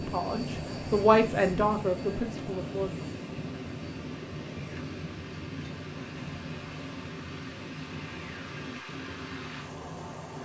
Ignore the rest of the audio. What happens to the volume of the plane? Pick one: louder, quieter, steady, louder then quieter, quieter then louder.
quieter.